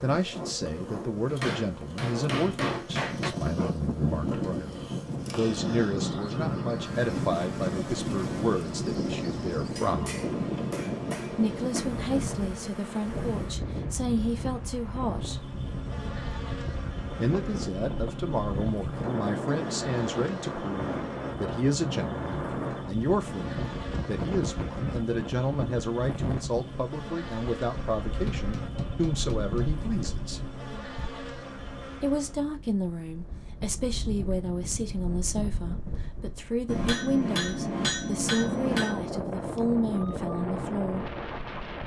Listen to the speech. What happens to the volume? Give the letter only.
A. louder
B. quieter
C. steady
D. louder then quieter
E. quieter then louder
C.